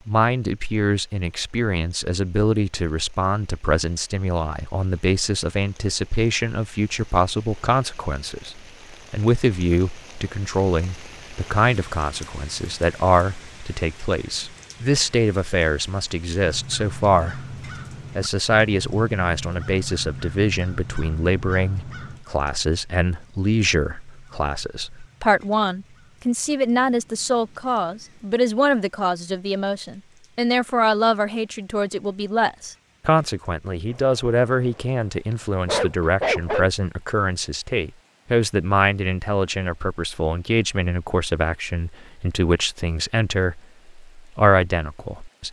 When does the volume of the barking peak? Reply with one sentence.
The loudest moment of the barking is at 36 seconds.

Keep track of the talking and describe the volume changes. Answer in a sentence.
The volume of the talking stays about the same.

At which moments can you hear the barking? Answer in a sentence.
You can hear the barking from 33.9 to 36.7 s.